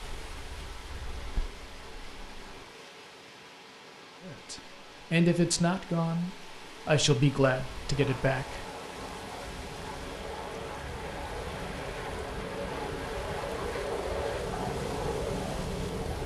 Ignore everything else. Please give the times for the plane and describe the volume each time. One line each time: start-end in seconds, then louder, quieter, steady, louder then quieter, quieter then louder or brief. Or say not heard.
0.0-2.6 brief
7.5-16.2 louder.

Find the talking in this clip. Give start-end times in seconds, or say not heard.
4.2-8.7.